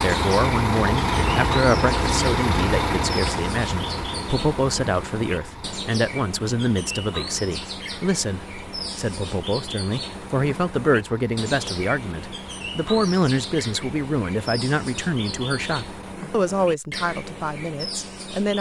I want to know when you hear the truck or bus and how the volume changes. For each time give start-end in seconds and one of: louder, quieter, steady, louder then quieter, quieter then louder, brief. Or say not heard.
0.0-16.1 quieter.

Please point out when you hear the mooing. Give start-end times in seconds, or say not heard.
not heard.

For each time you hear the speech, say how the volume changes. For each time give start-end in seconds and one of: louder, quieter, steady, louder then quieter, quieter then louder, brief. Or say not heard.
0.0-18.5 steady.